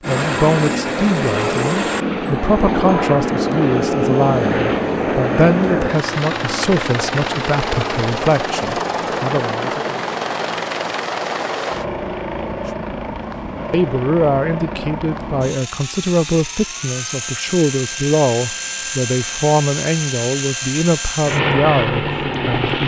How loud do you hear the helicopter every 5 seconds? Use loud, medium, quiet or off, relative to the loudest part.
loud, loud, medium, medium, loud.